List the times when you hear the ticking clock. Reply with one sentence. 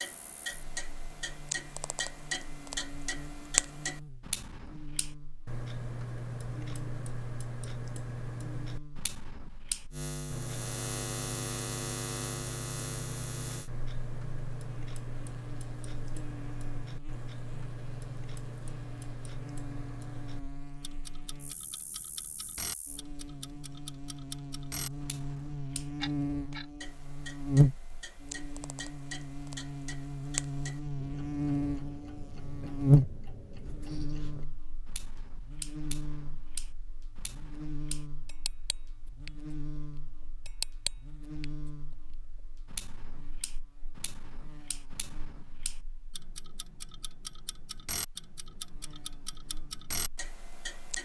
The ticking clock can be heard from 0.0 to 51.0 s.